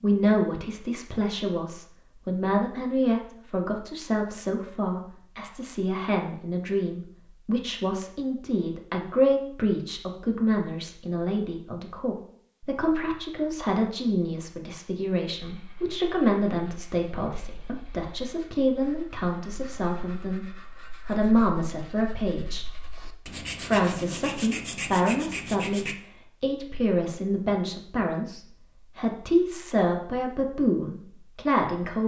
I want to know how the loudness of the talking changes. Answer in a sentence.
The volume of the talking stays about the same.